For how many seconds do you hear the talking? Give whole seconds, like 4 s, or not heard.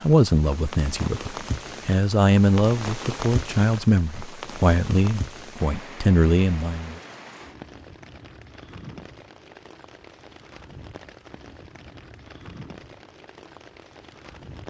7 s.